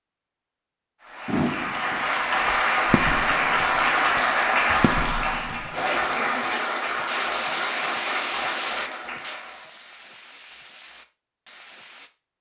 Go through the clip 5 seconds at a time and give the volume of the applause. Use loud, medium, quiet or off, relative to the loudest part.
loud, medium, off.